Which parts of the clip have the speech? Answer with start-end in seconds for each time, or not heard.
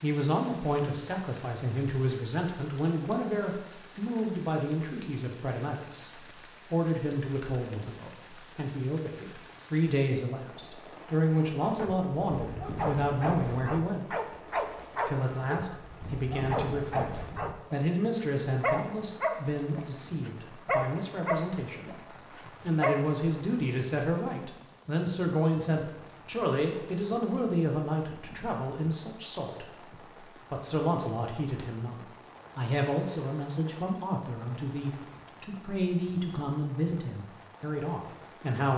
0.0-14.2, 15.1-29.6, 30.5-38.7.